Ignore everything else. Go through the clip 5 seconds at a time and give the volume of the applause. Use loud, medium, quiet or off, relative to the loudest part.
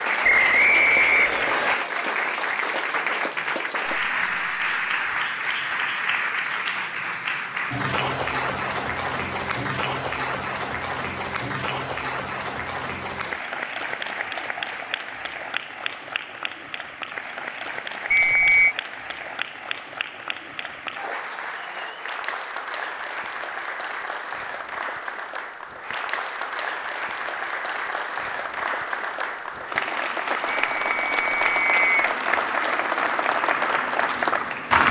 loud, loud, medium, medium, medium, medium, loud.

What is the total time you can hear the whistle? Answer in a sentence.
The whistle can be heard for 4 seconds in total.